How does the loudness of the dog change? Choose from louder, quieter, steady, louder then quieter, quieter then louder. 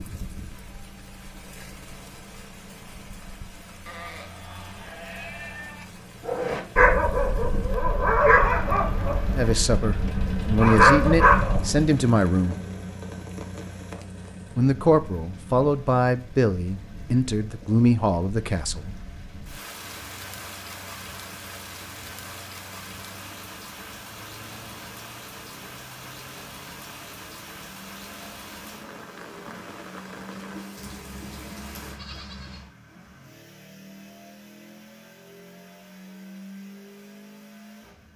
quieter then louder.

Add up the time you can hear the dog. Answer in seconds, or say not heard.
6 s.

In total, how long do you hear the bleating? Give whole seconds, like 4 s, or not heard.
4 s.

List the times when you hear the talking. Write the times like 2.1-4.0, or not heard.
9.3-12.6, 14.6-18.9.